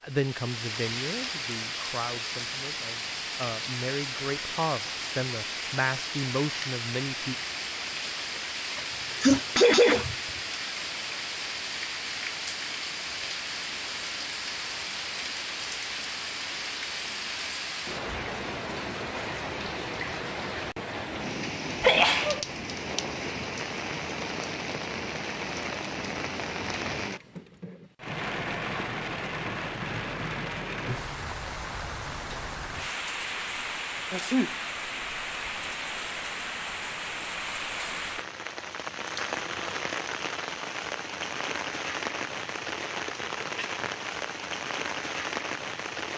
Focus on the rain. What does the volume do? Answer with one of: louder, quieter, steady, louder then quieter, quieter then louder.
steady.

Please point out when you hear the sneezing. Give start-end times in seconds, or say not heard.
8.8-10.2, 21.8-22.4, 34.1-34.5.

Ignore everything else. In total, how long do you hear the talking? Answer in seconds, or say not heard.
7 s.